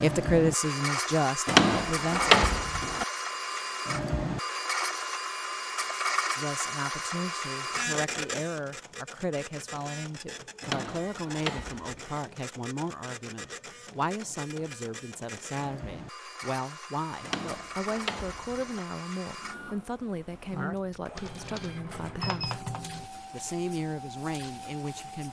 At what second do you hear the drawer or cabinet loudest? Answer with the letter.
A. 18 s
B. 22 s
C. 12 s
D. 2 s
D.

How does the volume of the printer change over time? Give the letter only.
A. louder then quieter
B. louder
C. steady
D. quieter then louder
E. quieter
E.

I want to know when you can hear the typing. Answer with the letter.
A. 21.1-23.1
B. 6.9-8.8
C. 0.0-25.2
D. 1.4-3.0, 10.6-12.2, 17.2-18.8
A.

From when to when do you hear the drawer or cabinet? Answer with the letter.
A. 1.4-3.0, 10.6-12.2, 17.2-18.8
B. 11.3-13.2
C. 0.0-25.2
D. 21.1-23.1
A.